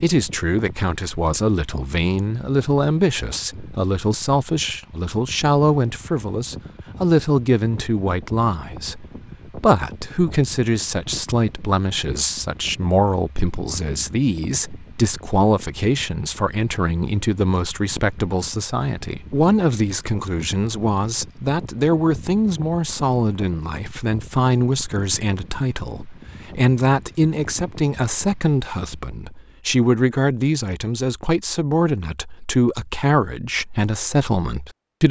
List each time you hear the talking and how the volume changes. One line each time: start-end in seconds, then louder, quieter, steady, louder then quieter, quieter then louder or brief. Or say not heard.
0.0-35.0 steady.